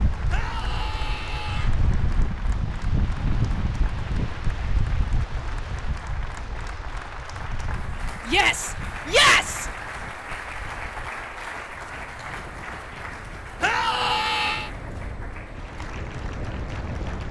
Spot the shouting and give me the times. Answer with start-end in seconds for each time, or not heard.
0.3-1.7, 8.2-9.7, 13.6-14.7.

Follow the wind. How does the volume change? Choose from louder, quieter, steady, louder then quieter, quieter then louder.
quieter then louder.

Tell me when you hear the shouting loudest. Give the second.
9 s.